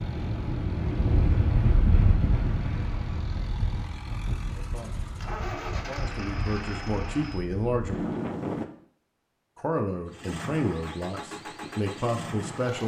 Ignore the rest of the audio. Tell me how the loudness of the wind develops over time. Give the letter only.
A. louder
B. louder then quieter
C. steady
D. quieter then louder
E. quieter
D.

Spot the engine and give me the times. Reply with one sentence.
The engine can be heard from 0.0 to 7.5 s and from 10.1 to 12.8 s.